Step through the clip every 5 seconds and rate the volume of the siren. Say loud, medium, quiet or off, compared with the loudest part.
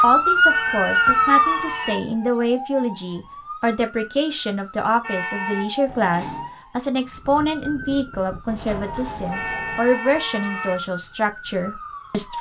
loud, quiet, quiet.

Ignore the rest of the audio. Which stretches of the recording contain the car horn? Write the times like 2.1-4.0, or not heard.
0.5-1.9, 5.0-5.7, 9.3-10.8.